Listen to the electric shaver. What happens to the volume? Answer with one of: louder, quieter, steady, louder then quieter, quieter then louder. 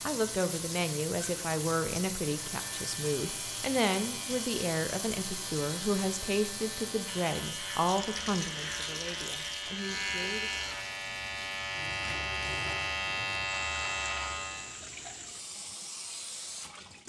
louder.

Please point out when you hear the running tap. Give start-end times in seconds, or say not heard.
0.0-17.0.